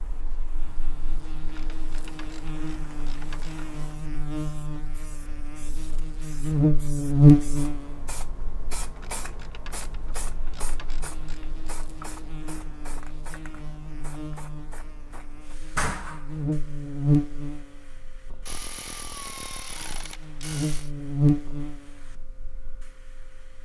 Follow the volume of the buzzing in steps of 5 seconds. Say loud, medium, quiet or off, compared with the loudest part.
quiet, loud, quiet, medium, medium.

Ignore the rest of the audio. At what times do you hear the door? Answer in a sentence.
The door can be heard from 15.8 to 16.4 s.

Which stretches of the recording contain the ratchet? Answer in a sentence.
The ratchet can be heard from 1.4 to 3.6 s, from 8.9 to 11.8 s and from 18.4 to 20.9 s.